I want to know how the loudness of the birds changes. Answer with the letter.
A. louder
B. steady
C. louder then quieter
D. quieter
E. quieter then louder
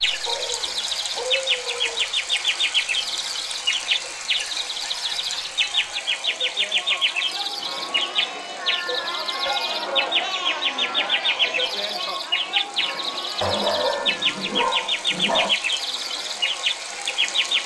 B.